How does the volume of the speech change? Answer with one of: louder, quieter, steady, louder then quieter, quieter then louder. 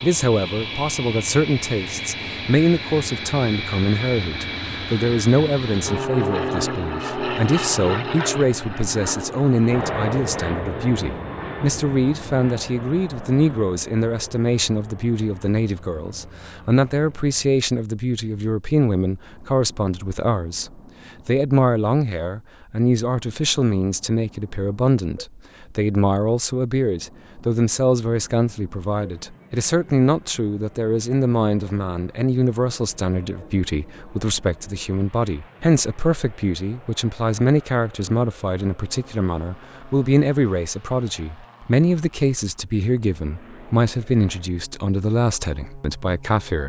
steady.